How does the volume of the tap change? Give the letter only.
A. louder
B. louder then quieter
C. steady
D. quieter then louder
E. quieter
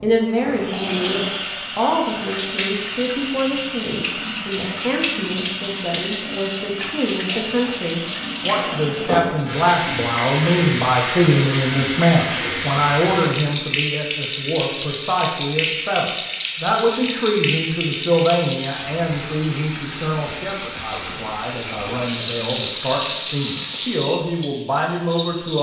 C.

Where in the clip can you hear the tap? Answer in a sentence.
The tap can be heard from 0.0 to 25.5 s.